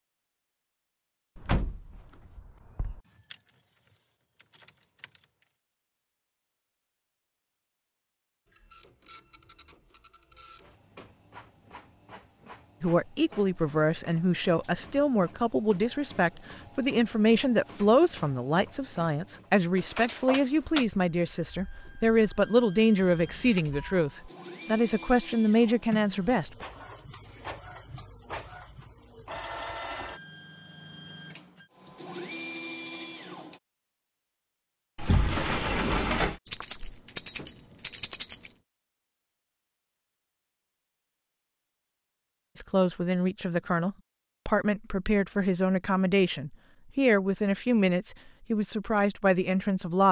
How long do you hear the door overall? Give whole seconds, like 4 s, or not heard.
4 s.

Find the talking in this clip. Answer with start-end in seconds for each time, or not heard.
12.8-26.6, 42.5-50.0.